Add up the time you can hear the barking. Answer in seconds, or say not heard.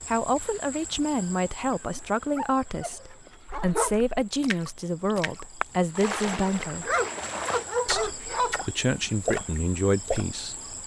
4 s.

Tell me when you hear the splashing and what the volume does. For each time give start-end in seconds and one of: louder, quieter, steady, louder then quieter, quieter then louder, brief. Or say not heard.
3.5-10.2 louder.